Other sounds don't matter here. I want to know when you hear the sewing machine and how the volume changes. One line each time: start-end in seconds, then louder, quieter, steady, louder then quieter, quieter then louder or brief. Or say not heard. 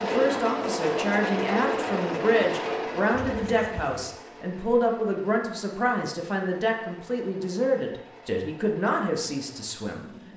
0.0-10.3 quieter.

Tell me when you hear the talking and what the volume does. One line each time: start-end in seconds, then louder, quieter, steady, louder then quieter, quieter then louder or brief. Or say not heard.
0.0-10.3 steady.